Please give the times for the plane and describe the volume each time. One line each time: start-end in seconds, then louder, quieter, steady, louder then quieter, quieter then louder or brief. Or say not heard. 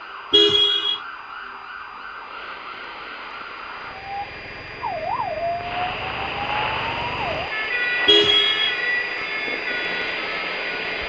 0.0-11.0 louder.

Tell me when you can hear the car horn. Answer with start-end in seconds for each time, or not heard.
0.3-1.0, 8.1-8.8.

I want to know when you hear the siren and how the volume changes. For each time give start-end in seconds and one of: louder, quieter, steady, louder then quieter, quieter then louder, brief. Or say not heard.
0.0-11.0 louder.